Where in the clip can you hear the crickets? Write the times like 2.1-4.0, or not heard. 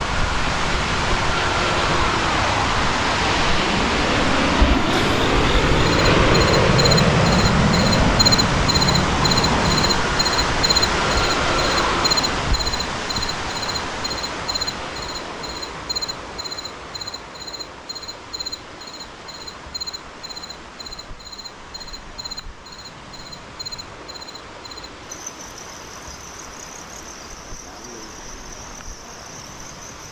4.8-30.0.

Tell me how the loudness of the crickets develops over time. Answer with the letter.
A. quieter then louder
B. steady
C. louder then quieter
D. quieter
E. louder
D.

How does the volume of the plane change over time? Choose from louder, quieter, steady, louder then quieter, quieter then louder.
louder then quieter.